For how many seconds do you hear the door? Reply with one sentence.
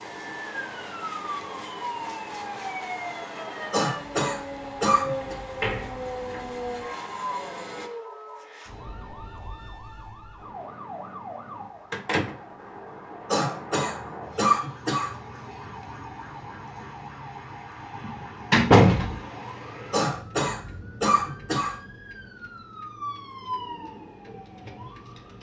You can hear the door for 3 seconds altogether.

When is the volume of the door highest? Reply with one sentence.
The volume of the door peaks at 19 seconds.